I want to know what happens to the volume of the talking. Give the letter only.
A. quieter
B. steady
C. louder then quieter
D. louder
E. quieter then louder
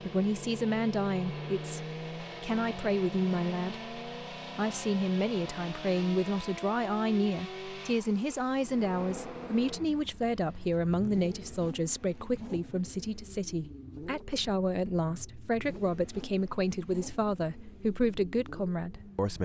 B.